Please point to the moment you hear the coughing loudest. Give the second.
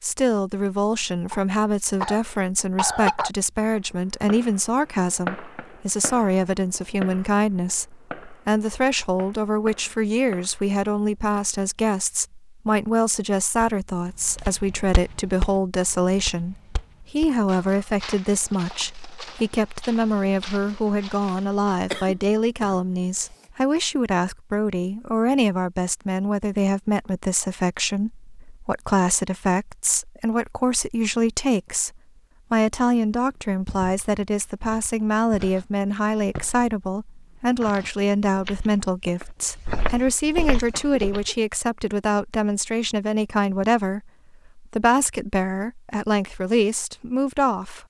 3 s.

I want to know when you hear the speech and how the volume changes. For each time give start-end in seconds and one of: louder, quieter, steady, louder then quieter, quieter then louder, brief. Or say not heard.
0.0-47.8 steady.